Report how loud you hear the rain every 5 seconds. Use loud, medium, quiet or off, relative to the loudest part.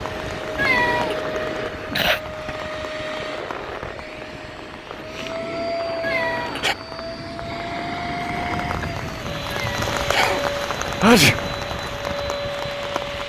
medium, loud, loud.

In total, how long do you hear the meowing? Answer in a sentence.
You can hear the meowing for 2 seconds altogether.